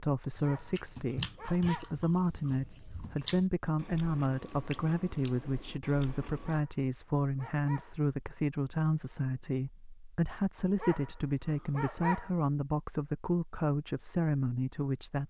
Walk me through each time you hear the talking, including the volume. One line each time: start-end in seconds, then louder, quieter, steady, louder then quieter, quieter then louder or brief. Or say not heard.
0.0-15.2 steady.